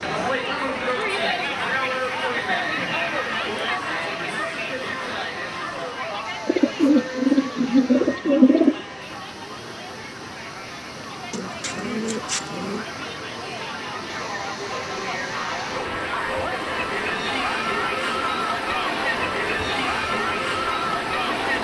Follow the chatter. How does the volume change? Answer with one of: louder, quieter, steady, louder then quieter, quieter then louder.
quieter then louder.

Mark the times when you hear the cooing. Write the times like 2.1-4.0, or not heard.
6.5-8.8, 11.3-12.8.